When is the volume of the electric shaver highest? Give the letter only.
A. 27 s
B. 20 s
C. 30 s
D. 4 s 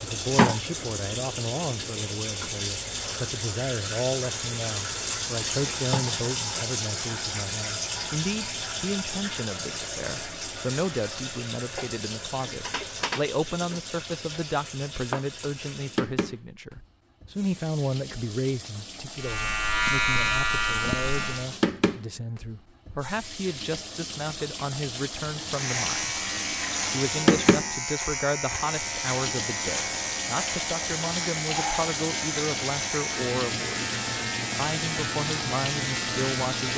B.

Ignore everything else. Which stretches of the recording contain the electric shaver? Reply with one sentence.
The electric shaver can be heard from 19.2 to 21.5 s and from 25.4 to 36.7 s.